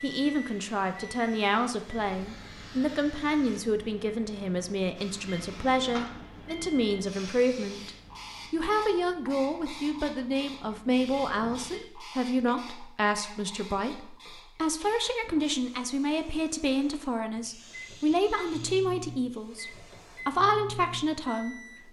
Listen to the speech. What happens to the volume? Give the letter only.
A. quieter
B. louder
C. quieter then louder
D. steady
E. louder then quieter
D.